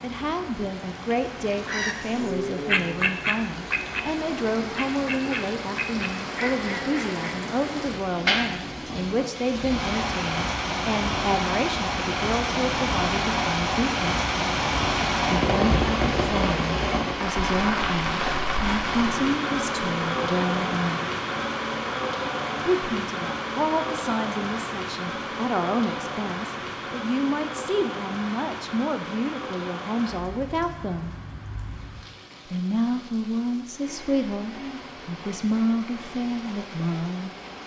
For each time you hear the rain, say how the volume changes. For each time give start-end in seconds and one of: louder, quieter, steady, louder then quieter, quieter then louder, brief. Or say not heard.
0.0-37.6 louder then quieter.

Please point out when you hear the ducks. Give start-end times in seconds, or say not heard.
1.5-7.3.